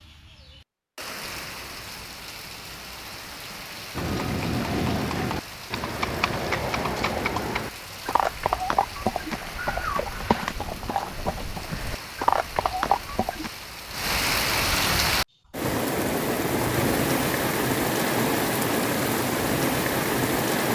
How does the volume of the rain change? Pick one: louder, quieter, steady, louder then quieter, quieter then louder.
louder.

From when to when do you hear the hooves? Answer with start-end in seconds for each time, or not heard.
4.0-13.5.